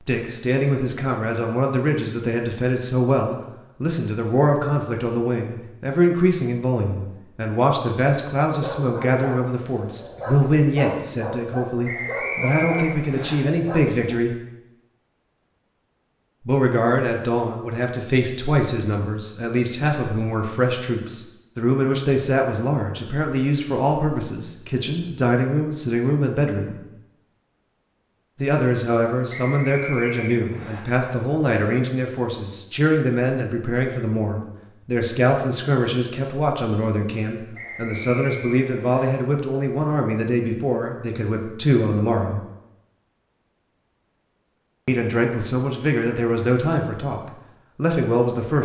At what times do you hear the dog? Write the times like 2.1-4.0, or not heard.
8.6-14.2.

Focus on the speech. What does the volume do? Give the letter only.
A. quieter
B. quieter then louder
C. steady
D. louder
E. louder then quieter
C.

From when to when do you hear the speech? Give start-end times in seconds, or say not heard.
0.1-14.4, 16.4-26.8, 28.4-42.4, 44.9-48.6.